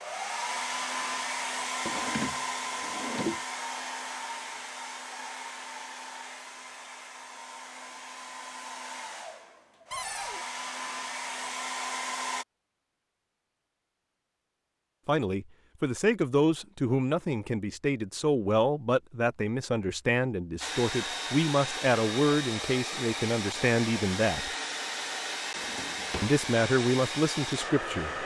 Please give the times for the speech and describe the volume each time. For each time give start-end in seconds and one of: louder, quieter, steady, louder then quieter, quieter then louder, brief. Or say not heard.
15.1-24.5 steady
26.2-28.2 brief.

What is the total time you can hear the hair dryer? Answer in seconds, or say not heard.
20 s.